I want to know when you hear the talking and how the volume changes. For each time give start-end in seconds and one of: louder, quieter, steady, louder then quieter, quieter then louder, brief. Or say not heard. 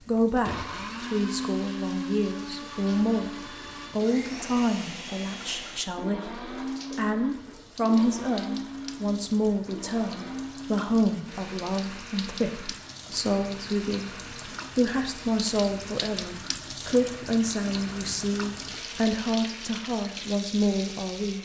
0.1-21.4 steady.